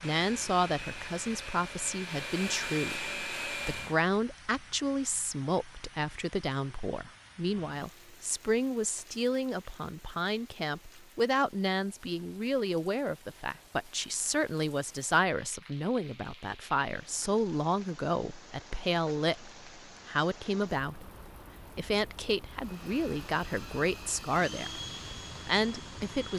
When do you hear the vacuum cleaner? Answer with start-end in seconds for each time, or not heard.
0.0-4.0, 22.6-26.3.